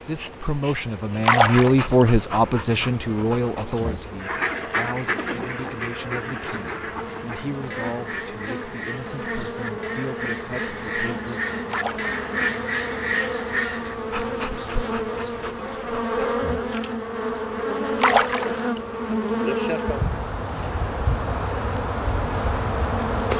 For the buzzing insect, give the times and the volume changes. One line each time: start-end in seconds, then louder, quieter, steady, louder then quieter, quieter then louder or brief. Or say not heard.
0.0-23.3 louder.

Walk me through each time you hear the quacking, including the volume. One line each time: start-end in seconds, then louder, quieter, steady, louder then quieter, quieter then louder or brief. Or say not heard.
4.2-13.9 quieter then louder.